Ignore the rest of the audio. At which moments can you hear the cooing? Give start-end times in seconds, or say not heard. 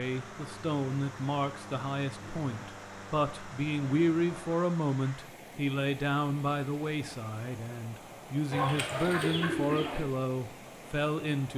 8.5-10.1.